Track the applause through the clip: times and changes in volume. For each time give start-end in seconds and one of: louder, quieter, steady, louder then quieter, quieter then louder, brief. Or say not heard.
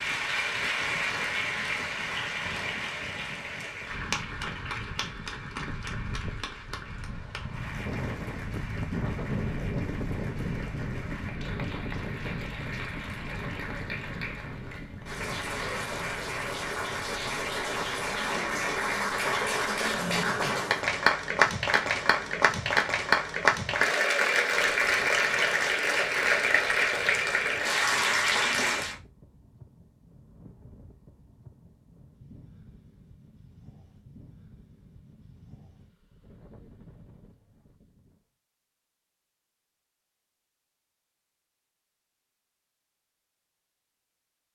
0.0-28.9 quieter then louder.